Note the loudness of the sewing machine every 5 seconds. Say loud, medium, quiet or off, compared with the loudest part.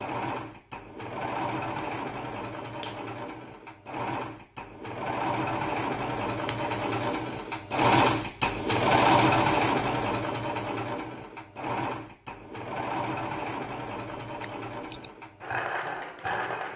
medium, loud, medium, medium.